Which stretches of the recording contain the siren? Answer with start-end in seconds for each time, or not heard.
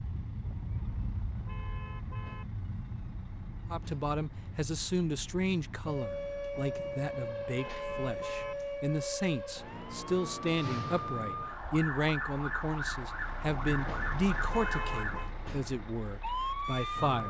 0.0-17.2.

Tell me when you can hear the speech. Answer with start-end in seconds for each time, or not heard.
3.7-17.2.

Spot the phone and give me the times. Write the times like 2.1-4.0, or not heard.
not heard.